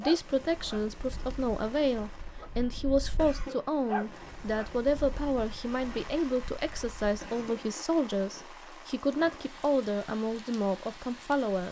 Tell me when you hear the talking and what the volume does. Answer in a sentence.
The talking can be heard from 0.0 to 11.6 s, at a steady volume.